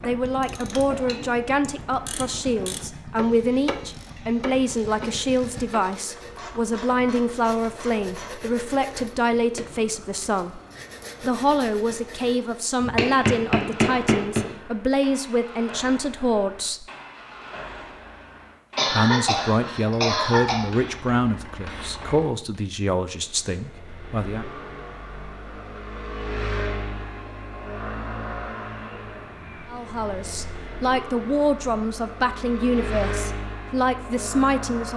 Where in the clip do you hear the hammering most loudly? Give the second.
14 s.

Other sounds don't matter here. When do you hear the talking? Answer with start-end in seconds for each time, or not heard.
0.0-10.6, 11.2-16.9, 18.9-24.4, 29.7-34.9.